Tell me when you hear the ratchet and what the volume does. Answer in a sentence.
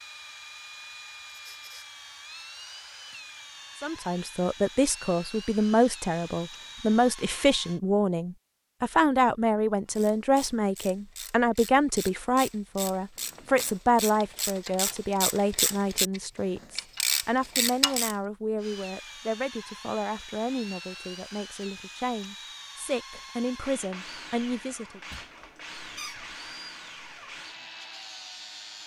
You can hear the ratchet from 9.9 to 18.1 s, getting louder.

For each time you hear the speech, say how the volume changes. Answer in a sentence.
You can hear the speech from 3.8 to 25.0 s, getting quieter.